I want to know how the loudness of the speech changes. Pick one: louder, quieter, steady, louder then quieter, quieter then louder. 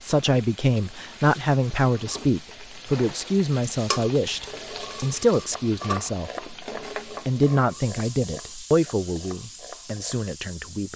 quieter.